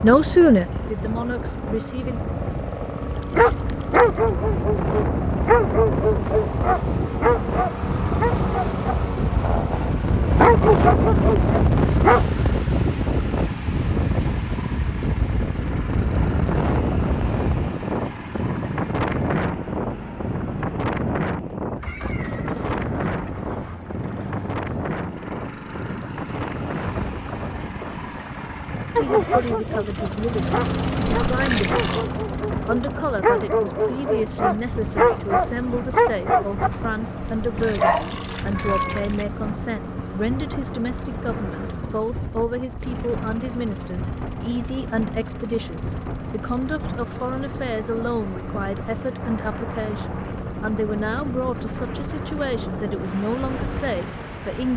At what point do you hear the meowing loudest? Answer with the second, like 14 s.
39 s.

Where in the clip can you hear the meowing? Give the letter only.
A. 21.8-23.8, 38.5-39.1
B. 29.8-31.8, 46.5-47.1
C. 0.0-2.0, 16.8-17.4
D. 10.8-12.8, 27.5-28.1
A.